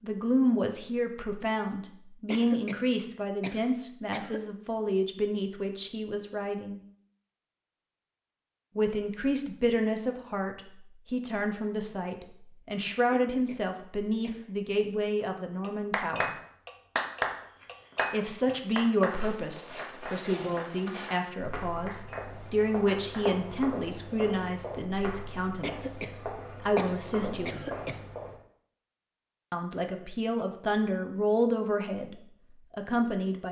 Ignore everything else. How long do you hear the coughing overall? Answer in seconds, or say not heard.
6 s.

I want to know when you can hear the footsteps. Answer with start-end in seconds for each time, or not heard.
17.3-28.4.